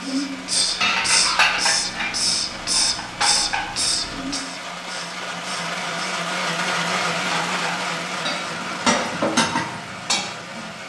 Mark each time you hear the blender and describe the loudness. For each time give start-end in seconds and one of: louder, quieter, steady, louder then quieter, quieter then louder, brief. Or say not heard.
0.0-10.8 louder then quieter.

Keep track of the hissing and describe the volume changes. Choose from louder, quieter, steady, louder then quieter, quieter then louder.
quieter.